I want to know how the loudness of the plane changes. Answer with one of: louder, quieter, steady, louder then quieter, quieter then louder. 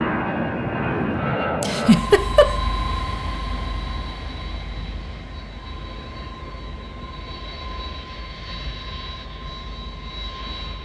quieter.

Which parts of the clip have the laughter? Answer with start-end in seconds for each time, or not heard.
1.6-2.5.